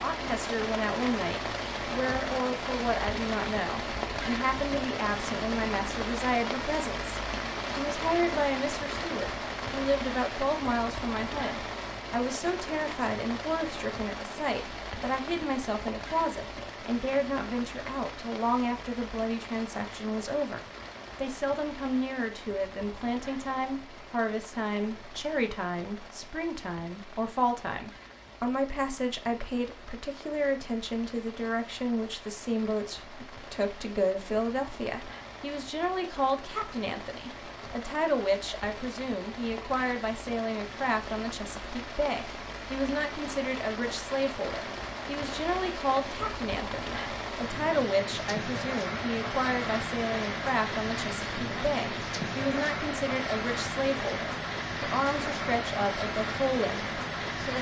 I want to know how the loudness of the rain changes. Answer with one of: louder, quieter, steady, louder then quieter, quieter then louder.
quieter then louder.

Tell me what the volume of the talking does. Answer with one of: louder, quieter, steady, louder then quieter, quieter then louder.
steady.